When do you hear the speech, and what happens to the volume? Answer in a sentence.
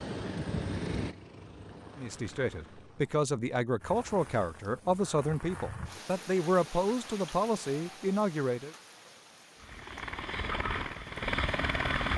The speech can be heard from 1.9 to 8.8 s, at a steady volume.